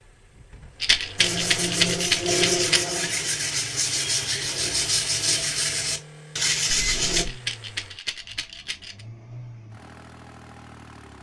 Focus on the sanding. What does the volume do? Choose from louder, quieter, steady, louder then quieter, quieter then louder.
steady.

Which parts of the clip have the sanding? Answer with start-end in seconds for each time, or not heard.
1.1-7.2.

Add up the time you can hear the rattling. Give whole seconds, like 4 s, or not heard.
4 s.